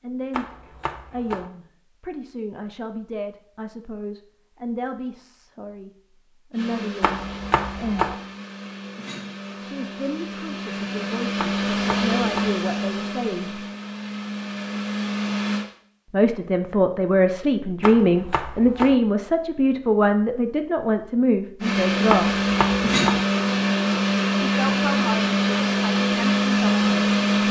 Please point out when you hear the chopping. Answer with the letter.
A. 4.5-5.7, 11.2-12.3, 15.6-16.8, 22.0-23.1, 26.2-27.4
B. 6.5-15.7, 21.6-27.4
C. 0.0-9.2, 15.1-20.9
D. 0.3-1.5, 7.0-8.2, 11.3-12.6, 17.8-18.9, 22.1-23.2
D.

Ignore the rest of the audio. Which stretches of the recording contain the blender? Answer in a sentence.
The blender can be heard from 6.5 to 15.7 s and from 21.6 to 27.4 s.